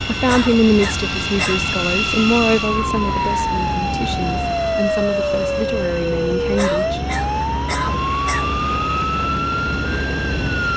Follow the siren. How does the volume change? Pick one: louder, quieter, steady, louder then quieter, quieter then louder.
louder.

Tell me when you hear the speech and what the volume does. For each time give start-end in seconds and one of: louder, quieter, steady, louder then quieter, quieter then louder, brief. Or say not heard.
0.1-7.0 quieter.